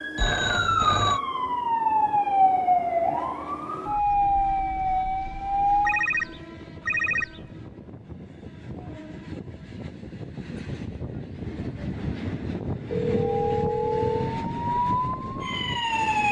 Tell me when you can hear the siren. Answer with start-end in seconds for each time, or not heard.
0.0-6.0, 13.2-16.2.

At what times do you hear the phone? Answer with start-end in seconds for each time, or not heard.
0.1-1.2, 5.8-7.5, 12.9-14.4.